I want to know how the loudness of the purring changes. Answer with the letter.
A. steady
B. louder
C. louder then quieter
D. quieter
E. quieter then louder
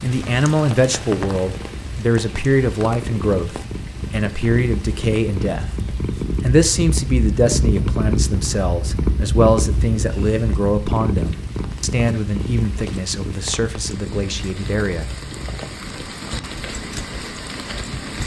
C.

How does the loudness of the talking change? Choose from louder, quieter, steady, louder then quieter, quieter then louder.
quieter.